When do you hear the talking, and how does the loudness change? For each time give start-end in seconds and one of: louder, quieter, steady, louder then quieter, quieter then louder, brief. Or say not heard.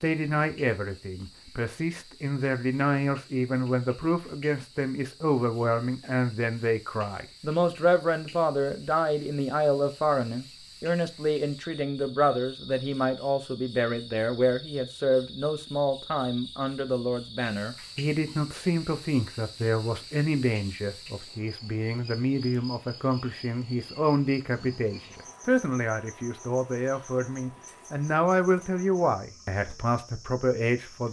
0.0-31.0 steady.